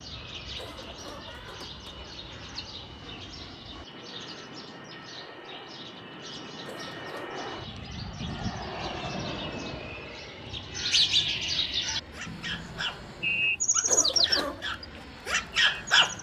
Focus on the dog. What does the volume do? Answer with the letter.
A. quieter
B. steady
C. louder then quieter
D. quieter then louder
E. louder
E.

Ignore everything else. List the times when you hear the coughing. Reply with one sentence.
You can hear the coughing from 0.5 to 2.0 s, from 6.6 to 7.4 s and from 13.8 to 14.7 s.